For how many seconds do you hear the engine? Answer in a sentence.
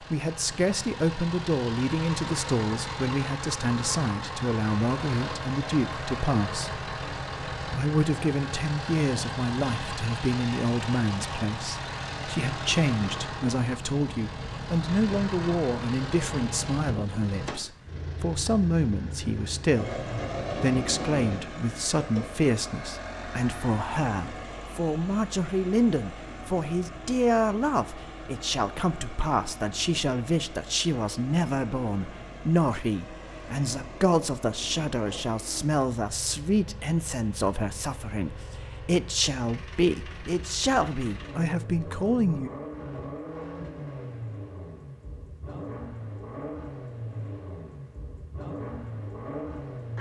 The engine can be heard for 50 seconds in total.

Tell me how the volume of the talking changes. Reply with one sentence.
The loudness of the talking stays about the same.